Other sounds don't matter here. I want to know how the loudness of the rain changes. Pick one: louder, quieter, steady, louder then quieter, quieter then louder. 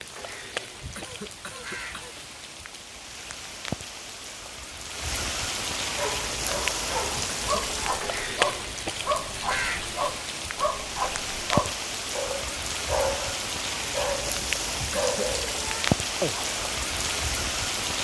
louder.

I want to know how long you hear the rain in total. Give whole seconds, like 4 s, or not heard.
18 s.